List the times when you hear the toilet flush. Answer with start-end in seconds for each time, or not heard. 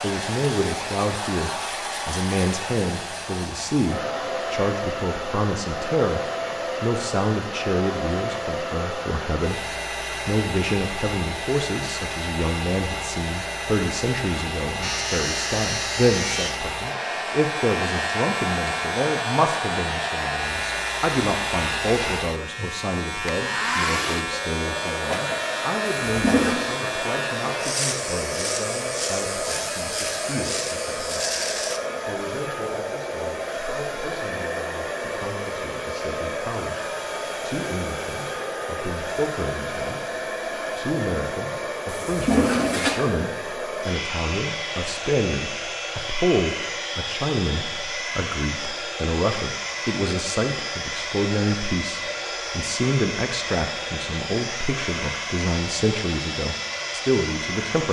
26.1-26.7, 41.9-43.0.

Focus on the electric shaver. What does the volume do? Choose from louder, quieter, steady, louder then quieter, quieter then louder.
steady.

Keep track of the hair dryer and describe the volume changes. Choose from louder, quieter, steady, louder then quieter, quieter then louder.
steady.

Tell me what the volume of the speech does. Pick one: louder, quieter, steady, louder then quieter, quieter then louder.
quieter then louder.